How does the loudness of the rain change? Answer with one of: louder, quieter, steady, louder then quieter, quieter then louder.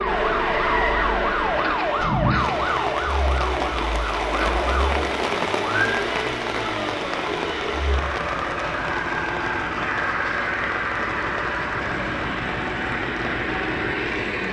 quieter.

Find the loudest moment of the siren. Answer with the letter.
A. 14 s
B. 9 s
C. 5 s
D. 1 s
D.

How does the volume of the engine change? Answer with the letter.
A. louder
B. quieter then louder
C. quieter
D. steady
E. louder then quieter
D.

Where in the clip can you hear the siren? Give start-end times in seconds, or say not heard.
0.0-5.9.